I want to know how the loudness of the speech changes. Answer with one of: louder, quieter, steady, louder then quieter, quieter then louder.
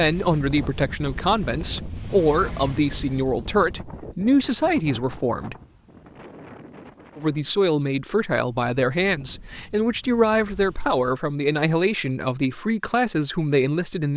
steady.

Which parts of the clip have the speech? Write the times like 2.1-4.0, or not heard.
0.0-5.5, 7.2-14.1.